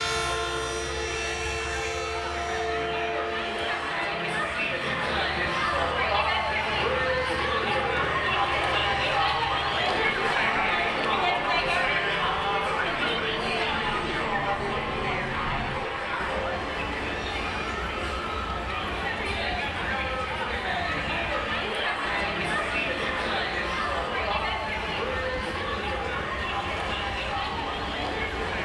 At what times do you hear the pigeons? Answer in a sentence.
You can't hear the pigeons here.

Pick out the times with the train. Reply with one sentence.
You can hear the train from 0.0 to 28.6 s.